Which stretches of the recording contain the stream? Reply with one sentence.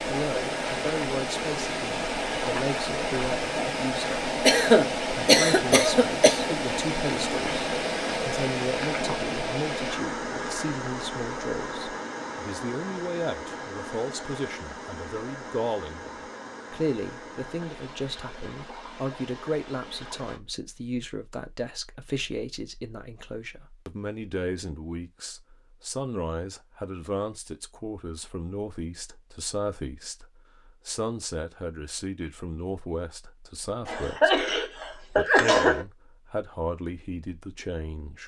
The stream can be heard from 0.0 to 20.4 s.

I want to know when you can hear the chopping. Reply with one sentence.
You can't hear the chopping here.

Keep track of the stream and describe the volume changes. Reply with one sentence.
The volume of the stream goes down.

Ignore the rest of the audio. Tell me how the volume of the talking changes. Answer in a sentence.
The loudness of the talking stays about the same.